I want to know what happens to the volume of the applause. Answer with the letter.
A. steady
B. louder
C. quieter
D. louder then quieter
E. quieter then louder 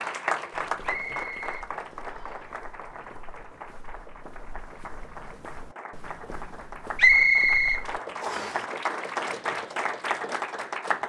E.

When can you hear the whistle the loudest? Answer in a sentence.
The loudest moment of the whistle is at 7 seconds.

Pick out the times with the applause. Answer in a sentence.
The applause can be heard from 0.0 to 11.0 s.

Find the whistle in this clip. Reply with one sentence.
You can hear the whistle from 0.8 to 2.5 s and from 7.0 to 8.6 s.